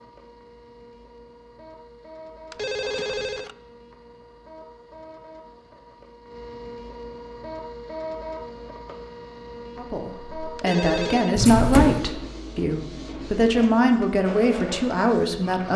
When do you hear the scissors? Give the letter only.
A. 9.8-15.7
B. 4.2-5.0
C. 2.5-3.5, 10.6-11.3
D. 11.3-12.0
D.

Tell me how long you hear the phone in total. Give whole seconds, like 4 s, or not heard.
2 s.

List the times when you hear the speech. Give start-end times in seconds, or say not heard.
9.8-15.7.